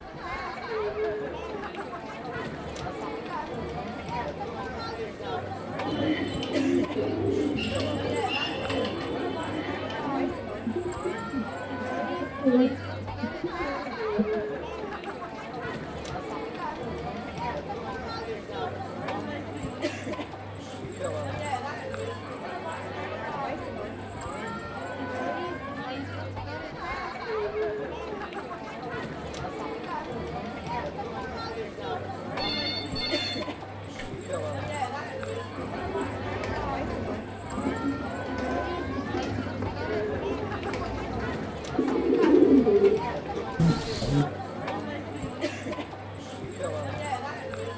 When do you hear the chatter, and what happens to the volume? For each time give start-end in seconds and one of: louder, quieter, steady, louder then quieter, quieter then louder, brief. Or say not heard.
0.0-47.7 steady.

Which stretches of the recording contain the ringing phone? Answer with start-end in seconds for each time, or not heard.
32.4-34.1.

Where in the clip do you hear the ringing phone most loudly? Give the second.
33 s.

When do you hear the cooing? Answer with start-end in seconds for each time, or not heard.
5.8-14.4, 35.5-44.2.